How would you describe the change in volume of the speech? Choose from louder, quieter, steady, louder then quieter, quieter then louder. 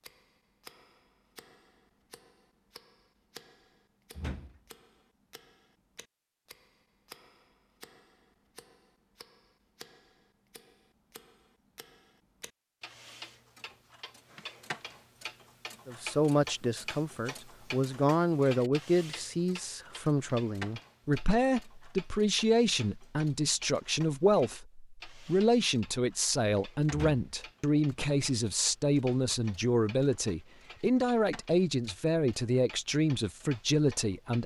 steady.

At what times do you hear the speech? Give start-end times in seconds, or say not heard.
15.8-34.4.